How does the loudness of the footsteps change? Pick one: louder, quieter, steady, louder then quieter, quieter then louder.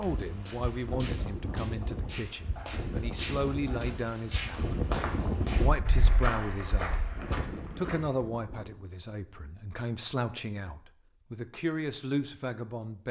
louder.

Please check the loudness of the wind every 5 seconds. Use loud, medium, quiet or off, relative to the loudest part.
loud, loud, off.